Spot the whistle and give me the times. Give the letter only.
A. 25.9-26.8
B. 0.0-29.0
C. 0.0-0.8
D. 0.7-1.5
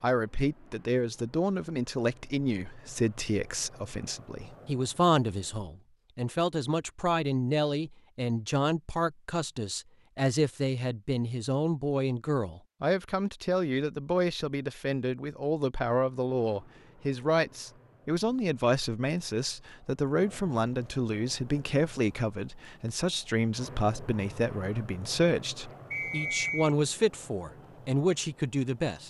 A.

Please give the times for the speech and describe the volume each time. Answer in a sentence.
You can hear the speech from 0.0 to 29.0 s, at a steady volume.